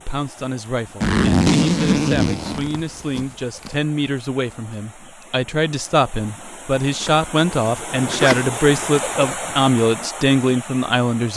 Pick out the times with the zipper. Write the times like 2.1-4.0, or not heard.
1.0-3.8, 7.0-9.3.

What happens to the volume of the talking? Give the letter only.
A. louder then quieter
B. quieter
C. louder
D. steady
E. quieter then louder
C.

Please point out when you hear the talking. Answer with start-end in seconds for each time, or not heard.
0.1-11.3.